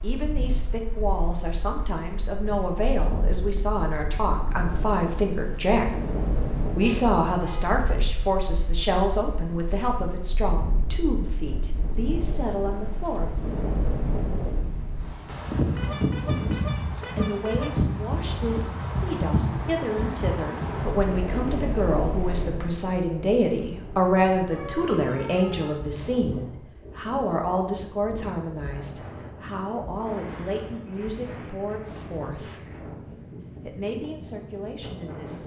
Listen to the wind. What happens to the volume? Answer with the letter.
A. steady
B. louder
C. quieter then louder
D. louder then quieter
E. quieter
D.